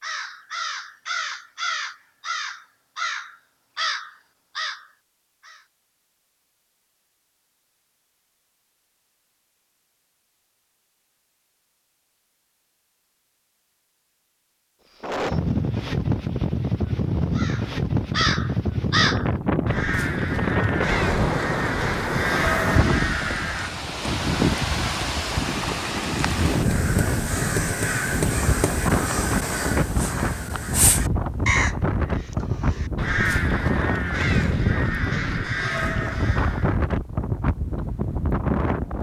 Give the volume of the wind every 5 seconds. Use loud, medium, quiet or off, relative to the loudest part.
off, off, off, loud, loud, loud, loud, loud.